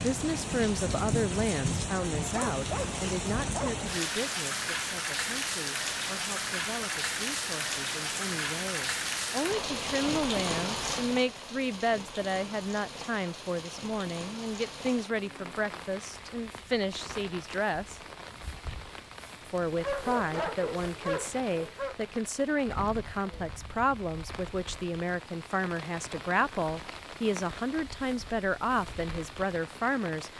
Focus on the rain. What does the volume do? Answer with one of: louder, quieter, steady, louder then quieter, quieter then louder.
quieter.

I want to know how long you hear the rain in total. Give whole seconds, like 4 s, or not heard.
30 s.